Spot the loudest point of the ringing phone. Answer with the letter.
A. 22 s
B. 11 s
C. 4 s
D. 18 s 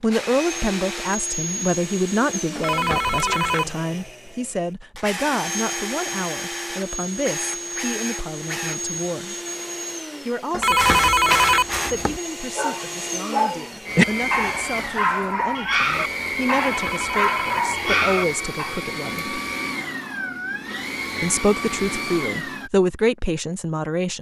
B.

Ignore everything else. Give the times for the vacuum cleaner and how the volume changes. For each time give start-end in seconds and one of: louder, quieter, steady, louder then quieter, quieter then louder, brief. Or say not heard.
0.0-22.7 steady.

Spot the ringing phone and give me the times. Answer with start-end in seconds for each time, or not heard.
2.5-3.6, 10.5-12.2, 16.6-18.1.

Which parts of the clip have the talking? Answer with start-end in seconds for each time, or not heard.
0.0-9.3, 10.2-19.4, 21.2-24.1.